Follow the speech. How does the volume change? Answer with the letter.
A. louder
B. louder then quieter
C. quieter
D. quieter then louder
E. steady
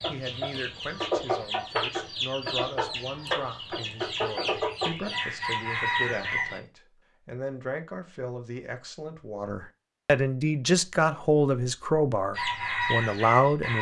A.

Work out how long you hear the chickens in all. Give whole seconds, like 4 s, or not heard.
8 s.